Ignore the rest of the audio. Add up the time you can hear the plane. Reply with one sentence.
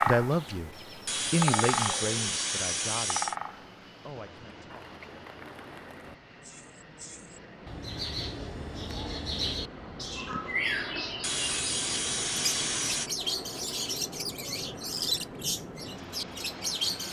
You can hear the plane for 17 seconds altogether.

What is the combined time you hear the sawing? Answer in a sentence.
The sawing can be heard for 4 seconds in total.